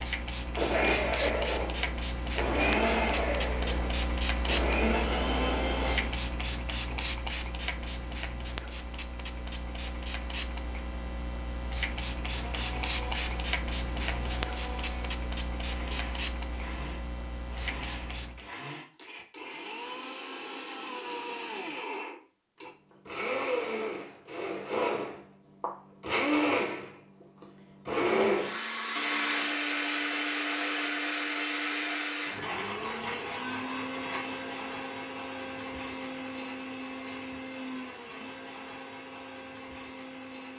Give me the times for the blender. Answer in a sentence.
You can hear the blender from 0.6 to 6.2 s and from 12.2 to 40.5 s.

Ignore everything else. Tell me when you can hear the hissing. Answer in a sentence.
The hissing can be heard from 0.0 to 18.5 s.